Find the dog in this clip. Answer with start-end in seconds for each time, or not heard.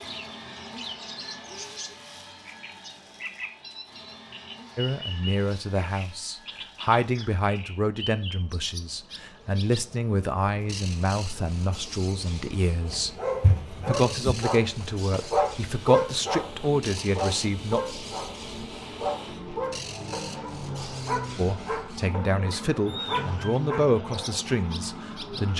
12.8-24.4.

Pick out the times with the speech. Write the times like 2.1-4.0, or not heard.
4.8-13.1, 13.8-17.9, 21.4-25.5.